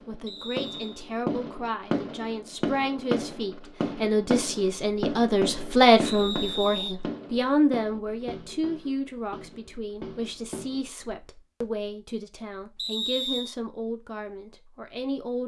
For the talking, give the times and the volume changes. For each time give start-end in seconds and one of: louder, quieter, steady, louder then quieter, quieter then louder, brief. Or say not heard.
0.1-15.4 louder then quieter.